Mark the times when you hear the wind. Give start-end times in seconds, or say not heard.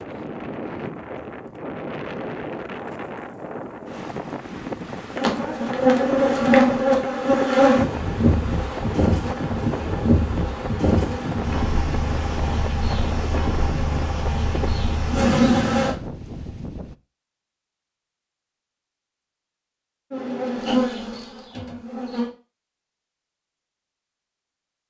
0.0-16.9.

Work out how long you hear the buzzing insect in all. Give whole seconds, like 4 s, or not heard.
13 s.